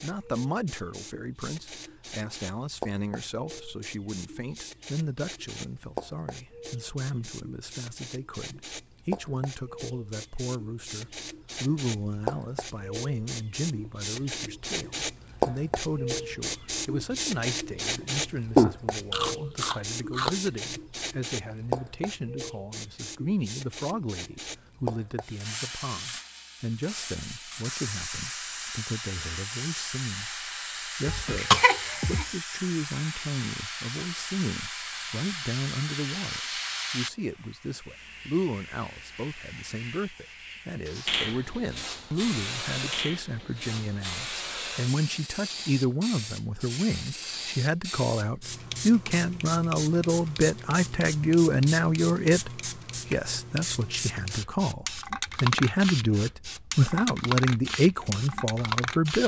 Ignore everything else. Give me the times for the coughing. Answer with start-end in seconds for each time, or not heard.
31.1-32.2.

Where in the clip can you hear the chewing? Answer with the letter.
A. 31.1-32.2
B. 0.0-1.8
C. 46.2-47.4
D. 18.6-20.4
D.